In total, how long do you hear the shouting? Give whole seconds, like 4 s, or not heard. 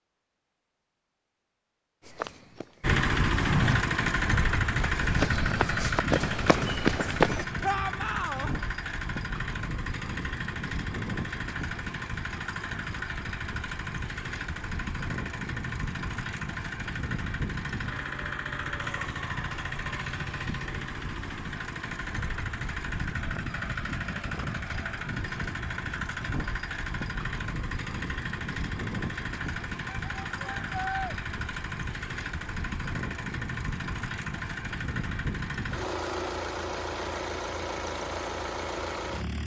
2 s.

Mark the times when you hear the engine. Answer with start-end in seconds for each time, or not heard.
2.8-39.4.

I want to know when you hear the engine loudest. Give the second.
3 s.